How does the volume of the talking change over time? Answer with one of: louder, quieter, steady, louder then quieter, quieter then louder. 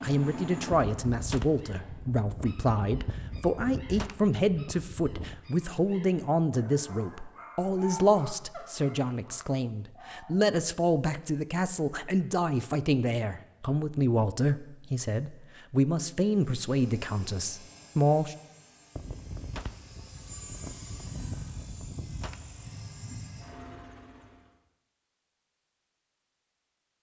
steady.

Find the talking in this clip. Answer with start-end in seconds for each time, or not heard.
0.0-18.4.